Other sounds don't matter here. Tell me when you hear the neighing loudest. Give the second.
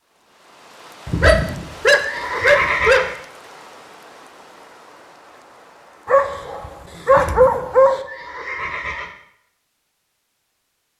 3 s.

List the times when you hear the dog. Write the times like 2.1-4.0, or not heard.
1.2-3.0, 6.0-8.1.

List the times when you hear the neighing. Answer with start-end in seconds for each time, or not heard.
1.1-3.1, 7.1-9.2.